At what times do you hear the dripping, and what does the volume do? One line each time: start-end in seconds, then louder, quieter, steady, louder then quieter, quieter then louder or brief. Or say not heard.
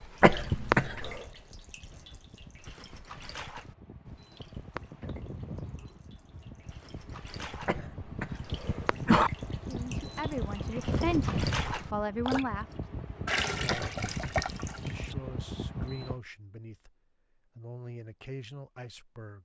0.0-15.2 quieter then louder.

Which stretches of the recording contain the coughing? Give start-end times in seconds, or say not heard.
0.2-1.2, 7.7-9.3, 13.7-14.4.